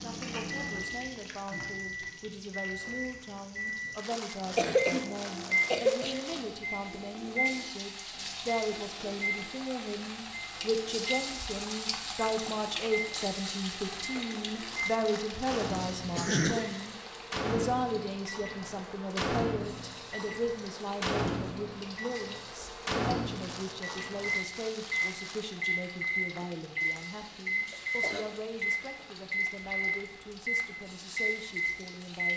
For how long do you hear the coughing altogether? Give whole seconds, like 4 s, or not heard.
4 s.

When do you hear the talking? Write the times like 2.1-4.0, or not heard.
0.0-32.3.